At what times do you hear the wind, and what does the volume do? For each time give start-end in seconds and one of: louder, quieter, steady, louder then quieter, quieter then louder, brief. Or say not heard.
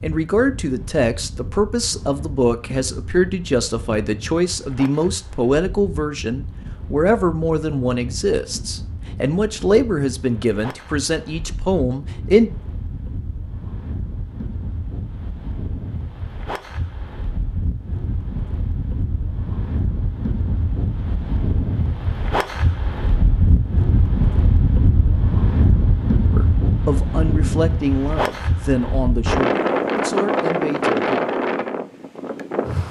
0.0-32.8 louder.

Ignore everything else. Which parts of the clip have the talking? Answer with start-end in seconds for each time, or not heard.
0.0-12.5, 26.3-31.3.